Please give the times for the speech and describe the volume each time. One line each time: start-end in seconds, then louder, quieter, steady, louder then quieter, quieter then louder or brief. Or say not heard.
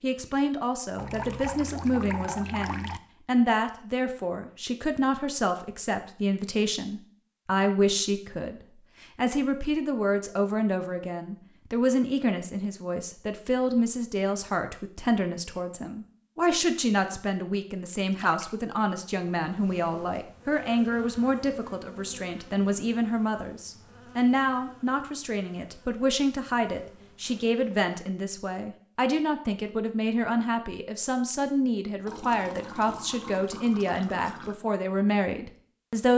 0.0-36.1 steady.